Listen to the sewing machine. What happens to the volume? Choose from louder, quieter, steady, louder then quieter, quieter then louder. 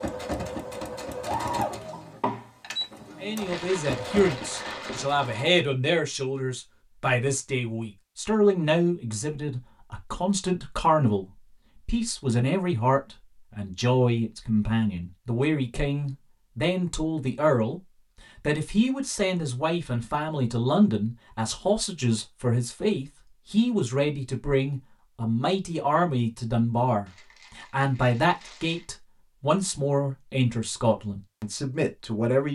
quieter.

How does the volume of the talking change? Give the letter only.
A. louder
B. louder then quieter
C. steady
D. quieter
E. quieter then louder
C.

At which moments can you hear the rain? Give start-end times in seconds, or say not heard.
not heard.